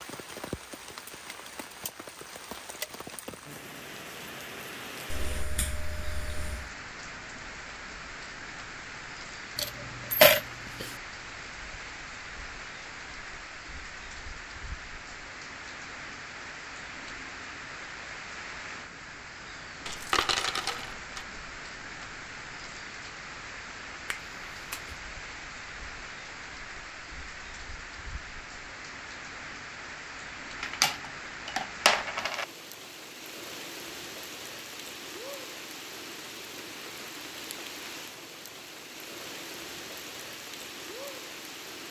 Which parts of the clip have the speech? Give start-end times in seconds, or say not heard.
not heard.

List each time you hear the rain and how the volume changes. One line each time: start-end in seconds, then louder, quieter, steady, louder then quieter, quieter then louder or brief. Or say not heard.
0.0-41.8 steady.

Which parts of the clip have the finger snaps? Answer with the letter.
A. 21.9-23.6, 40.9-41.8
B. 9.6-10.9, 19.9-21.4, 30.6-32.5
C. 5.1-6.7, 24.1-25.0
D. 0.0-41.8
C.